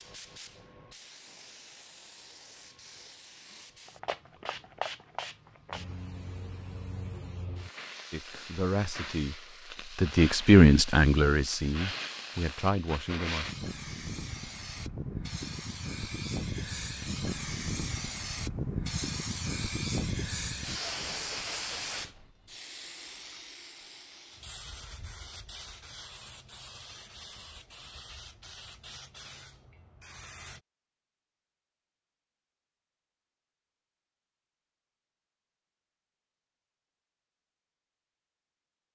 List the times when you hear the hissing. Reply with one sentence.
The hissing can be heard from 0.0 to 30.6 s.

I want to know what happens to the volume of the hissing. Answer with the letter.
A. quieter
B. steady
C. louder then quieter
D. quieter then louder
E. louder
C.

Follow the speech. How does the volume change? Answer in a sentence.
The loudness of the speech goes up, then down.